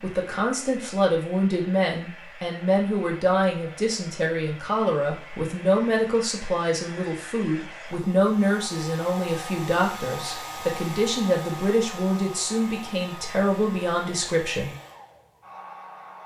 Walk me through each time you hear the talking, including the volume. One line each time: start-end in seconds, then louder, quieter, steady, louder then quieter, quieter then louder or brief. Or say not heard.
0.0-14.8 steady.